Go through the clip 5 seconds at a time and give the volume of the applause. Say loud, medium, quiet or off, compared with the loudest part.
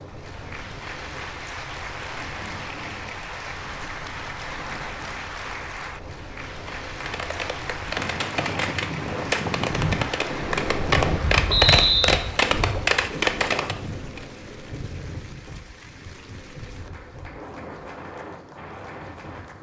loud, loud, loud, quiet.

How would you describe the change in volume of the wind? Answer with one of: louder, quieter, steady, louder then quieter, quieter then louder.
louder then quieter.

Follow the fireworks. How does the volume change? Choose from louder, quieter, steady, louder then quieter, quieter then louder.
louder.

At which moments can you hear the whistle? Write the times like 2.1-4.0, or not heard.
11.4-12.2.